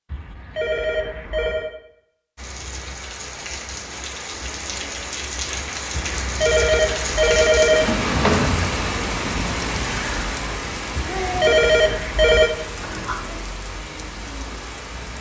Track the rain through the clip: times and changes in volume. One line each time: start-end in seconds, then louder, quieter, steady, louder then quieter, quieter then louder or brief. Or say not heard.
2.4-15.1 louder then quieter.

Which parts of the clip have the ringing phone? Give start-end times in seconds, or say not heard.
0.1-1.7, 6.0-7.9, 10.9-12.5.